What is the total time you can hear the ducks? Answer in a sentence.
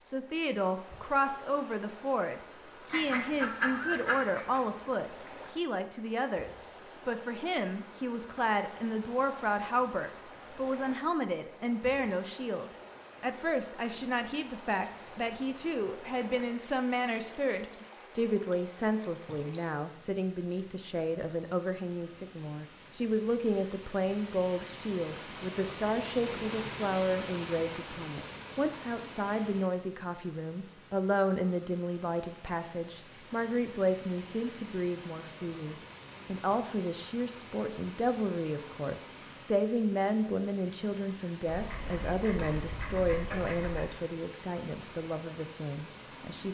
The ducks can be heard for 4 seconds in total.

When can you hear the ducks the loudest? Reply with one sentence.
The volume of the ducks peaks at 4 seconds.